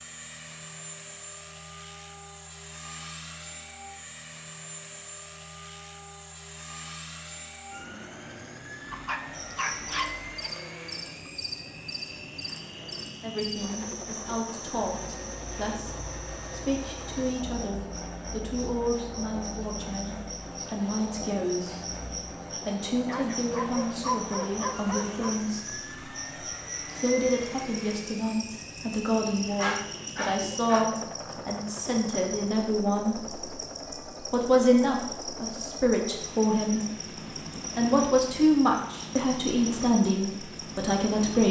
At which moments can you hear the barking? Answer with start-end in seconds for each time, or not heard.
8.9-10.4, 23.1-25.4, 29.6-31.4.